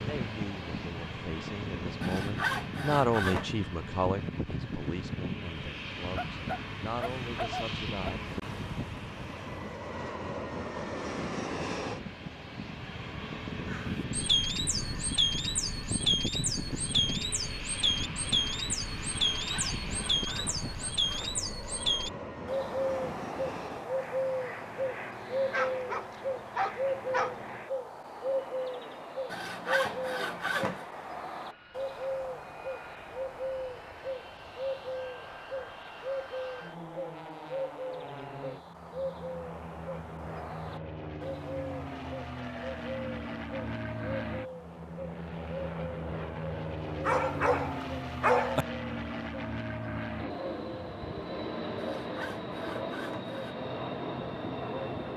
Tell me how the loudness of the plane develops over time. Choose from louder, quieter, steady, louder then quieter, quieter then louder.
quieter then louder.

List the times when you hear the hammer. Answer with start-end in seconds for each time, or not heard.
not heard.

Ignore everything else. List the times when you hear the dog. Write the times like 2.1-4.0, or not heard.
6.2-8.1, 25.5-27.4, 47.0-48.6.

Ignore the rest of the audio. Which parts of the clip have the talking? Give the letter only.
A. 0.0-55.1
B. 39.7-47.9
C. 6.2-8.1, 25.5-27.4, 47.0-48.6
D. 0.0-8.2
D.